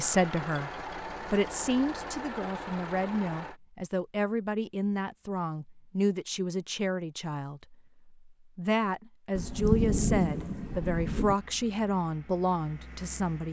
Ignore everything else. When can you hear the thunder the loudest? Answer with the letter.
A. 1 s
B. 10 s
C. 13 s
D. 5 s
B.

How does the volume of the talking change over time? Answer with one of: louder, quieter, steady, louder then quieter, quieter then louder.
steady.